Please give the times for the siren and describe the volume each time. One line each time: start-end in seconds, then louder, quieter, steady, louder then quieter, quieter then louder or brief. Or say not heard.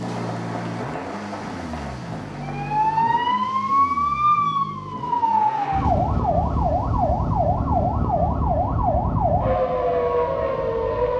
2.3-11.1 steady.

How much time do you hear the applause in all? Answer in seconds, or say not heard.
3 s.